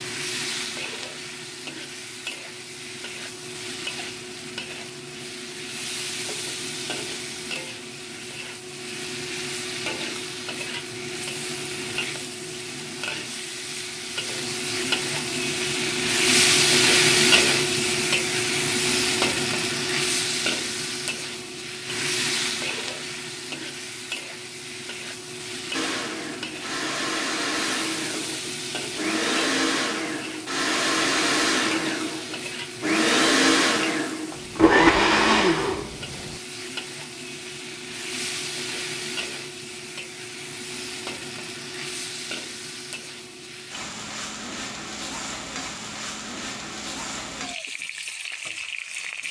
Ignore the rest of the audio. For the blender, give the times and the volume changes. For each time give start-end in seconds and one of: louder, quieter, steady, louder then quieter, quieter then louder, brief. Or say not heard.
25.7-36.4 louder.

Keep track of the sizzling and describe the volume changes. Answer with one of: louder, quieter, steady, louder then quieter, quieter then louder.
louder then quieter.